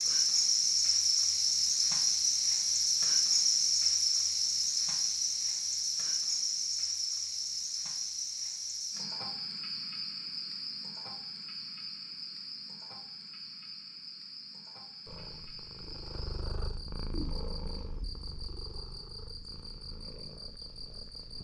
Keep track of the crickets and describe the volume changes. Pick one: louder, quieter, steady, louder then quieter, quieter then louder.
quieter.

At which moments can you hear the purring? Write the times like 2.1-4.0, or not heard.
15.1-21.3.